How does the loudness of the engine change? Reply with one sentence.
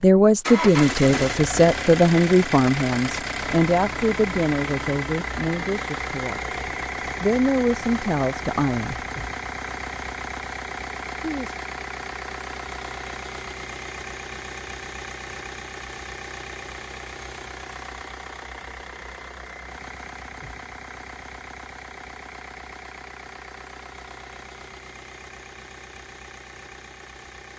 The volume of the engine goes down.